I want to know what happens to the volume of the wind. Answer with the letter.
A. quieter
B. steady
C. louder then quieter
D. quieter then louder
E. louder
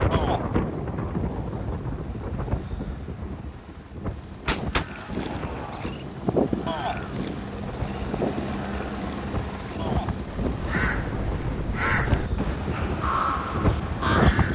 D.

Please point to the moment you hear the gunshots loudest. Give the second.
5 s.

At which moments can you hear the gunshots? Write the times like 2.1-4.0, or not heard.
4.5-5.9.